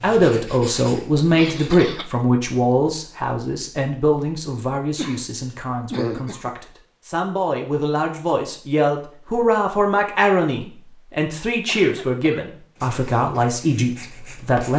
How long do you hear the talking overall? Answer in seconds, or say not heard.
15 s.